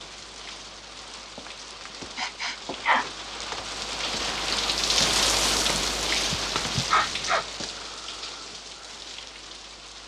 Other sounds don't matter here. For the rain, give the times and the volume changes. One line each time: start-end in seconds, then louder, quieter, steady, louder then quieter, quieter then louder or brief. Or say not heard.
0.0-10.0 louder then quieter.